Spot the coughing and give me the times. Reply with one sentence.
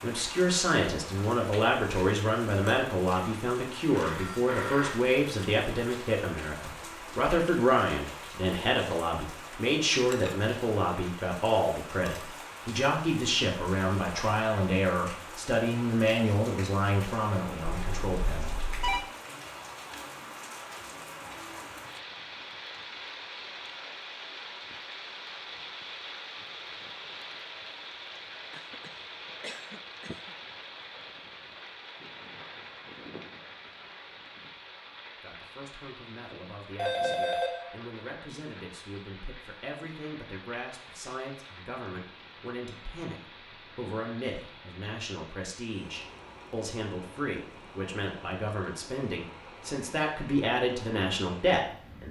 You can hear the coughing from 28.5 to 30.4 s.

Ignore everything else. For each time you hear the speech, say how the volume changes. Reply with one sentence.
You can hear the speech from 0.0 to 18.6 s, at a steady volume; and from 35.2 to 52.0 s, getting louder.